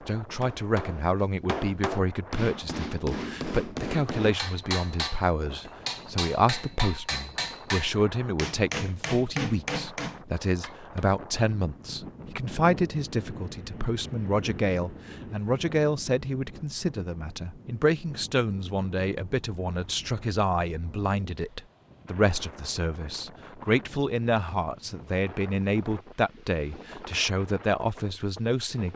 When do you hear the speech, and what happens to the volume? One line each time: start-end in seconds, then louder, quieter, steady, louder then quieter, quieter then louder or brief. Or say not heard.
0.1-28.9 steady.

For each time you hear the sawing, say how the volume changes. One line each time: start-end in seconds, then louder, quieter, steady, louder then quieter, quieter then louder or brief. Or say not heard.
not heard.